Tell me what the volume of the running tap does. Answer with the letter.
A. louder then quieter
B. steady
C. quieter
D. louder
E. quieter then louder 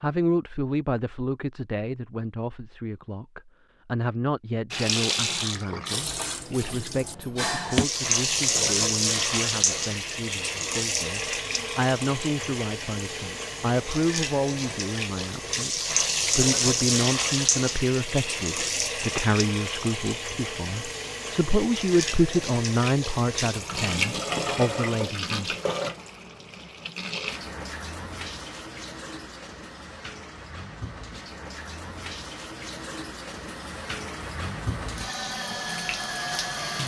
C.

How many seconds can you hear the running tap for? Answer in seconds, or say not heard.
32 s.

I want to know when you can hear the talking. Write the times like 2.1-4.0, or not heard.
0.0-25.6.